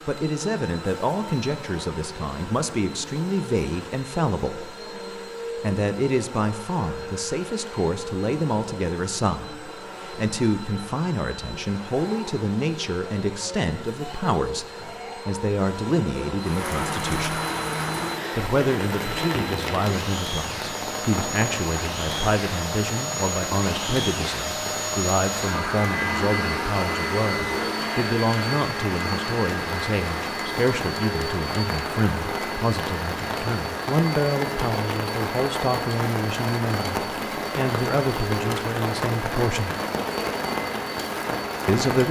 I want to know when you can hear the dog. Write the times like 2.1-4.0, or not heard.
not heard.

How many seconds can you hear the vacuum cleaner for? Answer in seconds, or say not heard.
42 s.